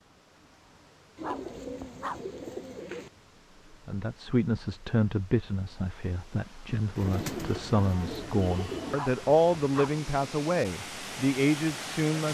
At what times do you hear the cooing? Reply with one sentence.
The cooing can be heard from 1.1 to 3.1 s and from 7.0 to 8.9 s.